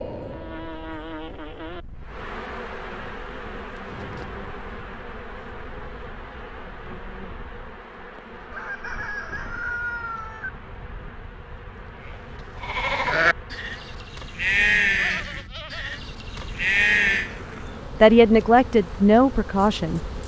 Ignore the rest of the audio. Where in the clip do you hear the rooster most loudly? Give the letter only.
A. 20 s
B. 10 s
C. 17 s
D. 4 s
B.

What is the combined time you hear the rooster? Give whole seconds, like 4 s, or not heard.
2 s.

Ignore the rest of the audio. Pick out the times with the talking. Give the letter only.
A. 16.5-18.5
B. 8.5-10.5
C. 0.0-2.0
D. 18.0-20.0
D.